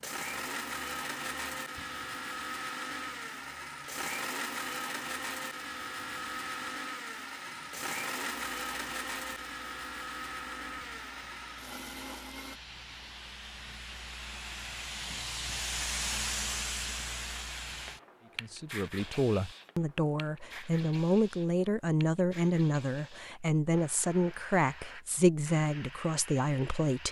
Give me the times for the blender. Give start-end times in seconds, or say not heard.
0.0-12.6.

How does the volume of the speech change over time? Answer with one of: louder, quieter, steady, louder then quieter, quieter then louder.
steady.